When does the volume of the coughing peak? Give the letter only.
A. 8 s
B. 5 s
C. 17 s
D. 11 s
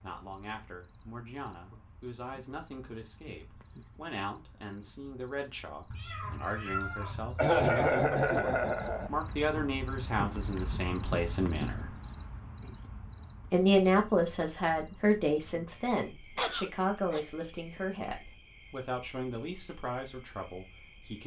A.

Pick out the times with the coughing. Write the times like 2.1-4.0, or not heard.
7.3-9.1, 16.4-17.2.